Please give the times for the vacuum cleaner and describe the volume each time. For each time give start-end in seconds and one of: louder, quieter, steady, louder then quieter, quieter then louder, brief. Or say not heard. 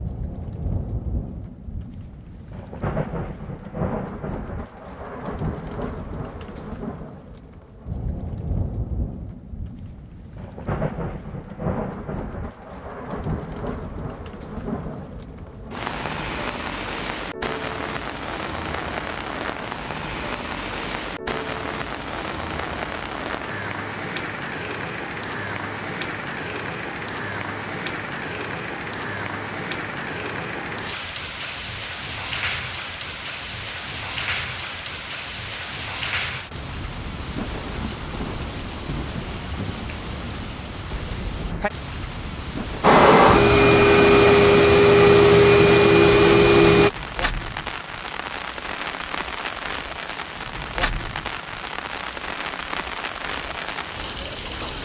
42.8-46.9 steady.